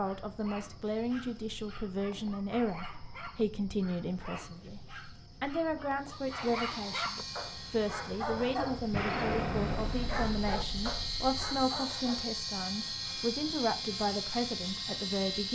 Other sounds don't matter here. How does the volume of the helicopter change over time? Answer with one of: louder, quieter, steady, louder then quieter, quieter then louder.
quieter then louder.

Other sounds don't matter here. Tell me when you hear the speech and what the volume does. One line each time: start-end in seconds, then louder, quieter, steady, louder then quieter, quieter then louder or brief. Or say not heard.
0.0-15.5 steady.